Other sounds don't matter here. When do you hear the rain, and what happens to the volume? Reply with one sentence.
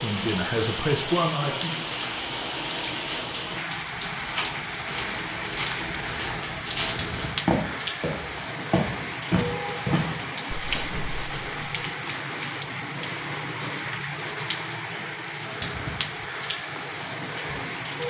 The rain can be heard from 0.0 to 18.0 s, at a steady volume.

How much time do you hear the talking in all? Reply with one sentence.
The talking can be heard for 2 seconds in total.